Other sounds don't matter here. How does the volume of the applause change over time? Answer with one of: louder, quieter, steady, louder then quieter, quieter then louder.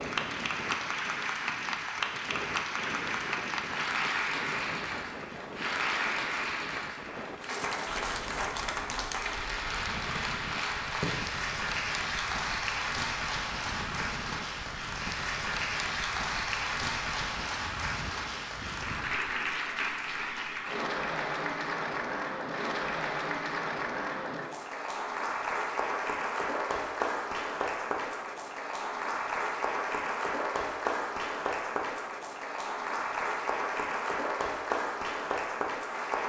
steady.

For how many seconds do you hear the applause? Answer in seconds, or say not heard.
36 s.